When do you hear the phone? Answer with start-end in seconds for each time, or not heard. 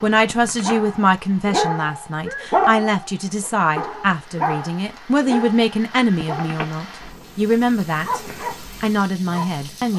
0.3-0.8, 6.2-6.7.